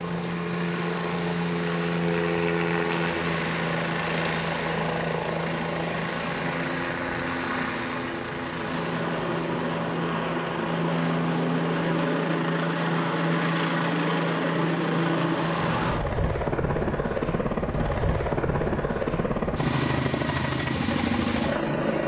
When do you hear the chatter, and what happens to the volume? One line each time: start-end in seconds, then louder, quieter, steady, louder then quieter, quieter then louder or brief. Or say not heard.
not heard.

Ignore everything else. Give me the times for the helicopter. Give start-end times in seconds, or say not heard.
0.0-22.0.